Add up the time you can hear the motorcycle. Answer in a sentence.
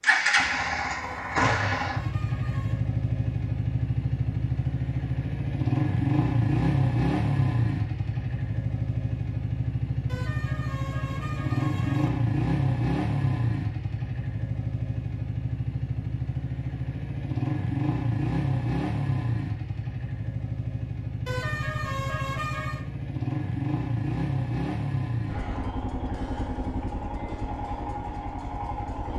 The motorcycle can be heard for 29 seconds in total.